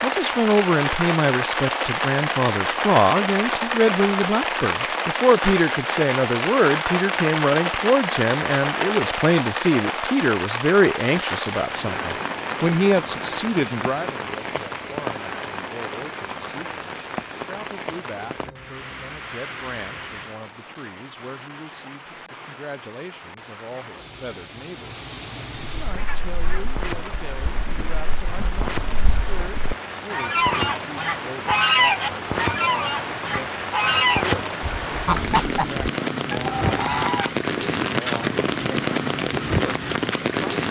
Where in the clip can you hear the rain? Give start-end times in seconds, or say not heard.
0.0-40.6.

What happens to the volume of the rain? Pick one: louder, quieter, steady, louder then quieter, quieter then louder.
quieter then louder.